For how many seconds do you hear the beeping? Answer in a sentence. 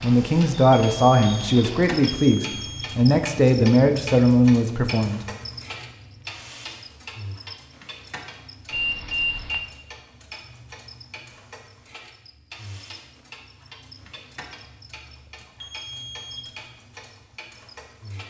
You can hear the beeping for 4 seconds altogether.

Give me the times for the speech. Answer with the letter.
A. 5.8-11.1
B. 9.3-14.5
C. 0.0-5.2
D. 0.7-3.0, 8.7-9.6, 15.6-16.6
C.